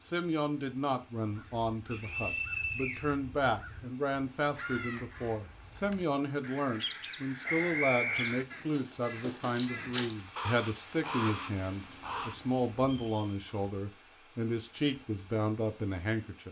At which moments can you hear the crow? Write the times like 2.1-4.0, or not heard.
1.2-12.3.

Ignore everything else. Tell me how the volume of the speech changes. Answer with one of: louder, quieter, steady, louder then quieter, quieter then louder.
steady.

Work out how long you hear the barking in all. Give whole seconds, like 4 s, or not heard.
not heard.